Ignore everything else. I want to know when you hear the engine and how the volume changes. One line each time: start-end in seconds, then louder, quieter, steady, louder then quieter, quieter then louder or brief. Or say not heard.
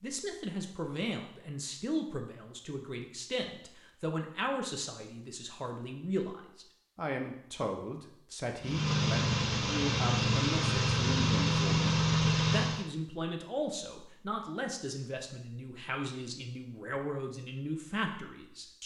8.6-12.8 steady.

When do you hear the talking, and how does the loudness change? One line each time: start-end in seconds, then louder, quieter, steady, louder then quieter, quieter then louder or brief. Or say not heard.
0.0-18.8 steady.